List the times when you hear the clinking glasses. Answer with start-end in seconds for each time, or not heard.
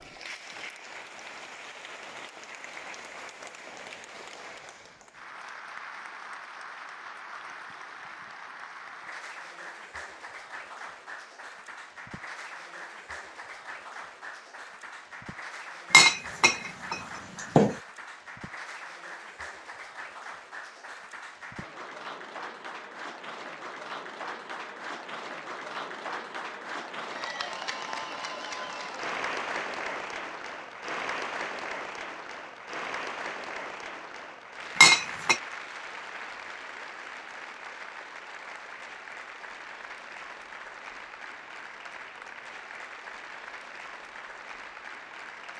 15.9-17.8, 34.8-35.4.